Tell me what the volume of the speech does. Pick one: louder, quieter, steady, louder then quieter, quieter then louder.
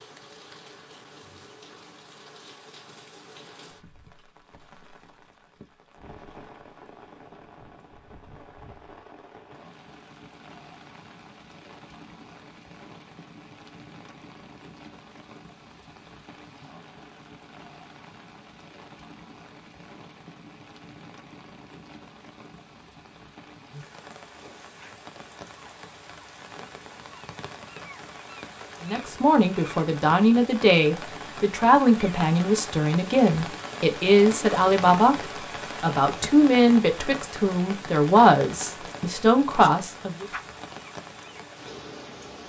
steady.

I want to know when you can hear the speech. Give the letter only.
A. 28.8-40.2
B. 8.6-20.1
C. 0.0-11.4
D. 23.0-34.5
A.